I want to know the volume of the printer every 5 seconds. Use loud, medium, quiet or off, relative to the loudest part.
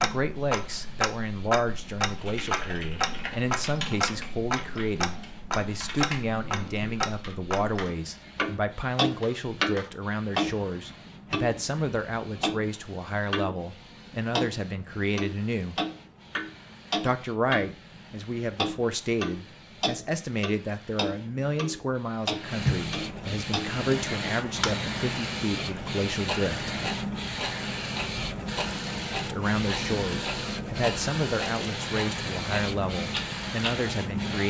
quiet, quiet, quiet, quiet, loud, loud, loud.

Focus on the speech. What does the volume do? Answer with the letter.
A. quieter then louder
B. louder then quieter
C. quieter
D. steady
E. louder
D.